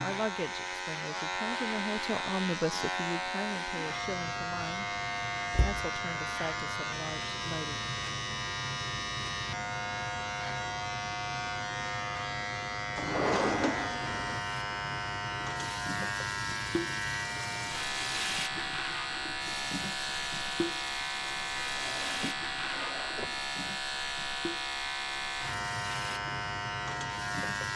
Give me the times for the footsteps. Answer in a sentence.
You can't hear the footsteps here.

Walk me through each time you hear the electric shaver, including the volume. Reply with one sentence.
The electric shaver can be heard from 0.0 to 27.7 s, at a steady volume.